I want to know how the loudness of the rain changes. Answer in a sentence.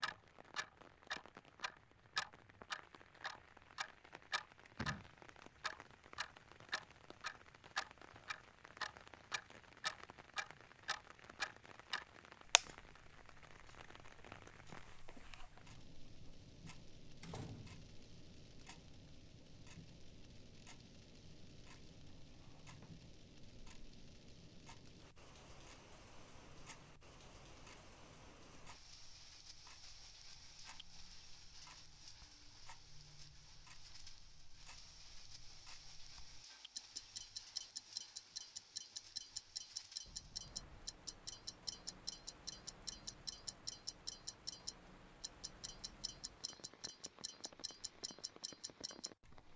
The loudness of the rain stays about the same.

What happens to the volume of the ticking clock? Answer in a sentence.
The volume of the ticking clock goes down, then up.